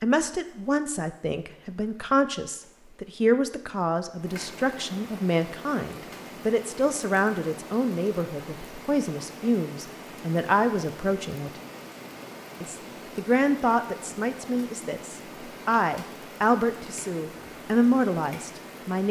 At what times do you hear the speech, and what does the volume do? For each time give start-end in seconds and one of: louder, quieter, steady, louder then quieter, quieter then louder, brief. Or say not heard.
0.0-11.5 steady
12.6-19.0 quieter then louder.